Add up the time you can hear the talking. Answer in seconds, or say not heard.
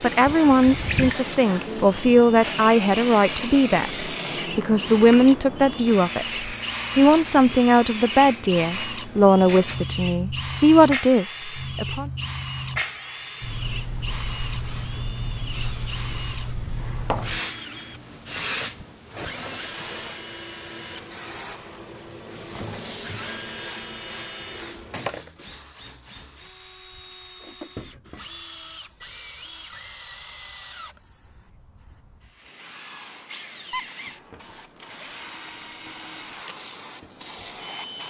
12 s.